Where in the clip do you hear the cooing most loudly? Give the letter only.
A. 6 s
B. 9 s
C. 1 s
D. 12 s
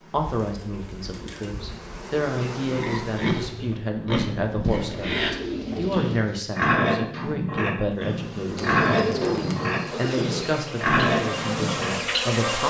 B.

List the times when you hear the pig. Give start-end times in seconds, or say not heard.
2.6-11.9.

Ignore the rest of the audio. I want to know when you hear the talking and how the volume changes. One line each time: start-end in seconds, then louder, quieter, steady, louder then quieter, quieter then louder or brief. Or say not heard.
0.1-12.6 steady.